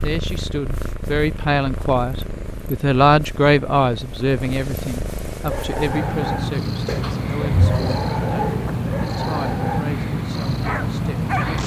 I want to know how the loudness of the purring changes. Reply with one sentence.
The volume of the purring goes up.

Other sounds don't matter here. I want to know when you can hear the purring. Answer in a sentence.
The purring can be heard from 0.0 to 11.6 s.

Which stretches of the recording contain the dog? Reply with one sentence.
You can hear the dog from 5.4 to 11.6 s.